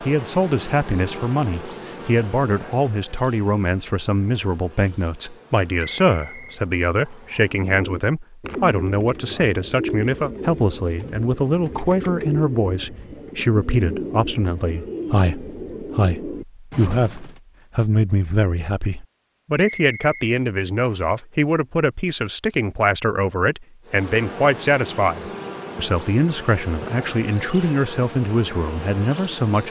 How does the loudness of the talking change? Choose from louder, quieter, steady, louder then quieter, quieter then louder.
steady.